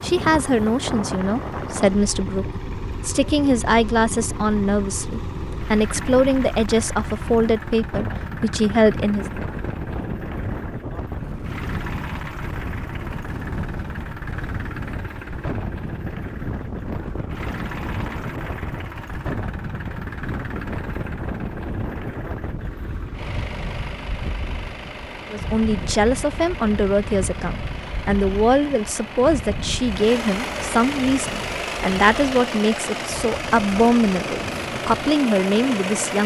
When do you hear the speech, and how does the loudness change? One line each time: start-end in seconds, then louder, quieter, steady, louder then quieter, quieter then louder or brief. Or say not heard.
0.0-9.2 steady
25.3-36.2 steady.